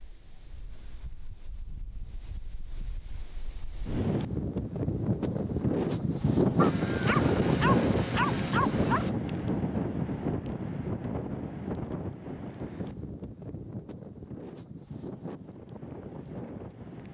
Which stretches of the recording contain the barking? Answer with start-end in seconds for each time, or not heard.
6.5-9.1.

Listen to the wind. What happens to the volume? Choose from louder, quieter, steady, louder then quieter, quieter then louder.
louder then quieter.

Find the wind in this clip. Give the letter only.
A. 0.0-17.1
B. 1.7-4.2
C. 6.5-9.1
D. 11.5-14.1
A.